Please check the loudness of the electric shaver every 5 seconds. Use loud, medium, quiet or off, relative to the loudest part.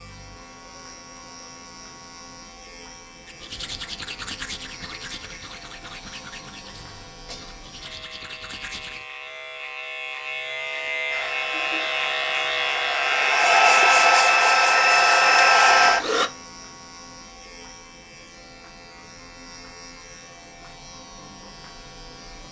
quiet, quiet, loud, quiet, quiet.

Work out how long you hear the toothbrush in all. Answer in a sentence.
You can hear the toothbrush for 6 seconds altogether.